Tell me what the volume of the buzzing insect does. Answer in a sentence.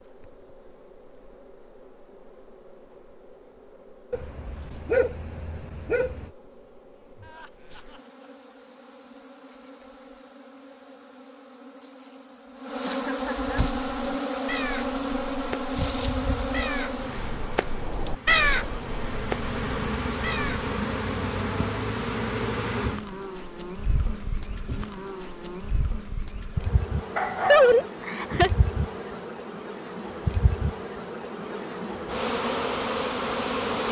The loudness of the buzzing insect goes up.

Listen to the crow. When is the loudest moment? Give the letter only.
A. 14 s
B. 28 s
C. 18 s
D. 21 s
C.